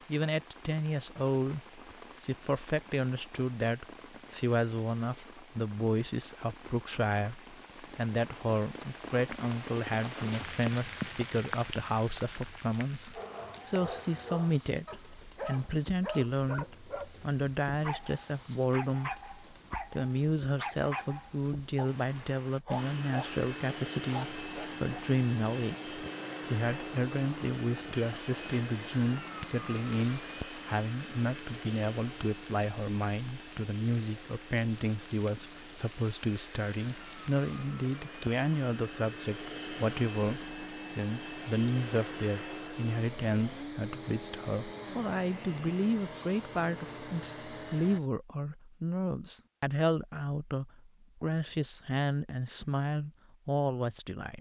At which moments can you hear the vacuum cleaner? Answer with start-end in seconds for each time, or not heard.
22.8-48.0.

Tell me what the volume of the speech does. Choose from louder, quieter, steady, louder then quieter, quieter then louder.
steady.